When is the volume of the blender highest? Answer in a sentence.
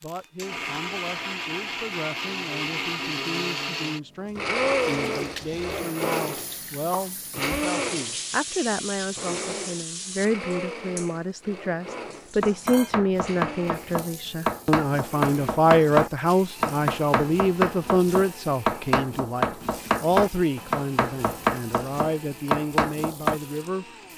The loudest moment of the blender is at 5 seconds.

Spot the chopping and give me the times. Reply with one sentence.
The chopping can be heard from 12.4 to 23.4 s.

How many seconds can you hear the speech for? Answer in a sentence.
The speech can be heard for 24 seconds in total.